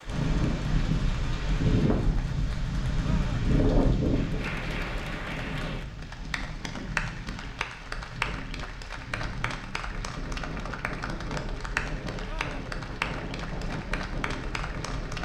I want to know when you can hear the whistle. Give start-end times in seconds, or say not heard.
not heard.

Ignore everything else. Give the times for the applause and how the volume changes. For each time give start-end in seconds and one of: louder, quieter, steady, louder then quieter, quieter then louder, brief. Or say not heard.
0.0-15.1 louder.